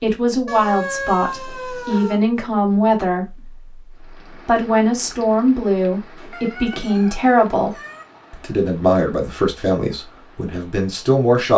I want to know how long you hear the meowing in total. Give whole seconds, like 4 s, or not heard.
4 s.